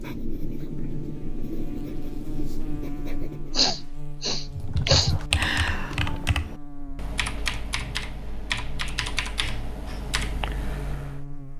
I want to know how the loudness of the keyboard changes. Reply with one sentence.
The volume of the keyboard goes down.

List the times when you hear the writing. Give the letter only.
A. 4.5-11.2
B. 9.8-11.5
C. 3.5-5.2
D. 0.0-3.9
D.